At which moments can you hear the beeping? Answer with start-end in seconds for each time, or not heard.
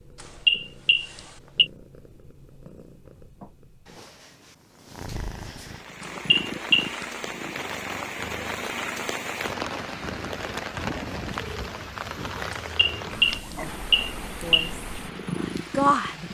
0.2-1.7, 6.0-7.0, 12.8-14.7.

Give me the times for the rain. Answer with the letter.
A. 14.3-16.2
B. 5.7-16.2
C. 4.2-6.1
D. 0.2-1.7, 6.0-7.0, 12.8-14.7
B.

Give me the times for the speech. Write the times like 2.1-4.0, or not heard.
14.3-16.2.